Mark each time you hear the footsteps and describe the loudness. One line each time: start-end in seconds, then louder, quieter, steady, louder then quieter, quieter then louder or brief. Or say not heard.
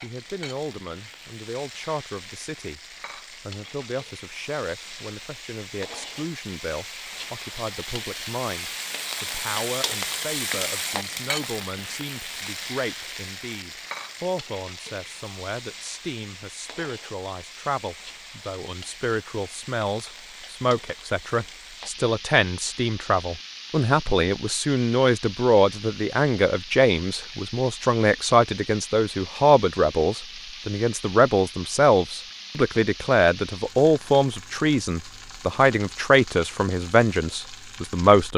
not heard.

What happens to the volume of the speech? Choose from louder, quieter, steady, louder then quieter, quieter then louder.
louder.